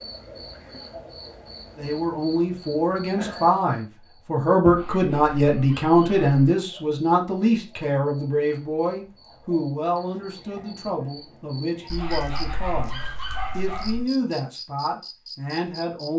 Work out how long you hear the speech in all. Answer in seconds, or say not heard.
14 s.